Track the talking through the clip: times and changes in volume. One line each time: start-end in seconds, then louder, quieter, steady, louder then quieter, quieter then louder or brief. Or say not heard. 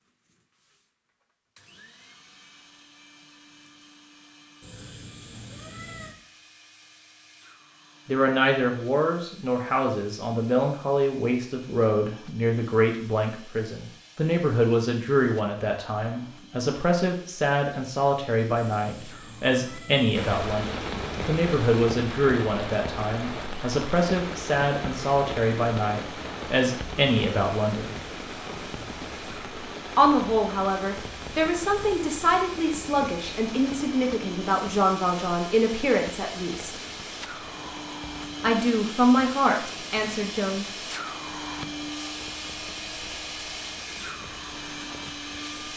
8.1-27.9 steady
29.9-36.8 steady
38.4-40.6 brief.